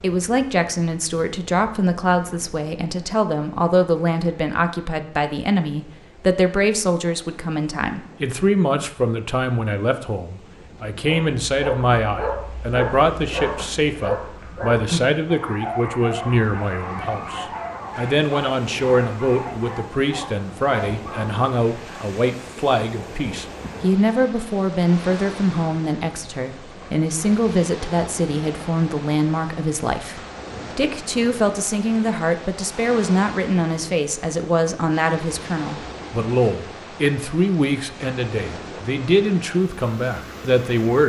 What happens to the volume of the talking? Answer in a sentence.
The volume of the talking stays about the same.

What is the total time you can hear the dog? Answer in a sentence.
You can hear the dog for 11 seconds altogether.